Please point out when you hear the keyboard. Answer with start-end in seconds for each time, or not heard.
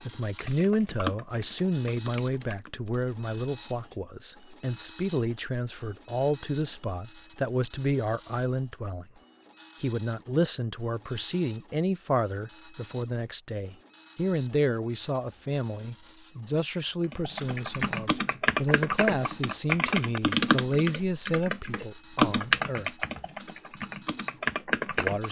0.0-3.0, 17.1-25.2.